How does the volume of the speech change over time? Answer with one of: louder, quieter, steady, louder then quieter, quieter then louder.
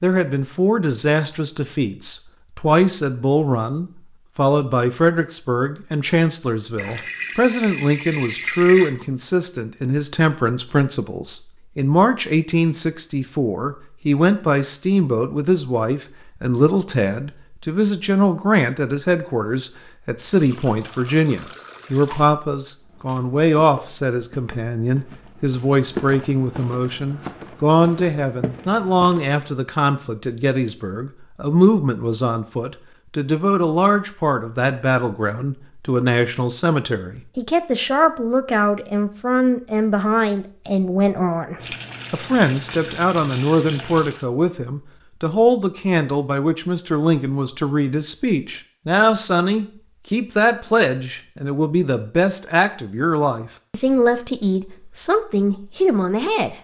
steady.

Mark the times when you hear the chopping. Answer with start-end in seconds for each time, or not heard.
not heard.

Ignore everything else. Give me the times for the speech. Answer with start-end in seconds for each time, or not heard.
0.0-56.5.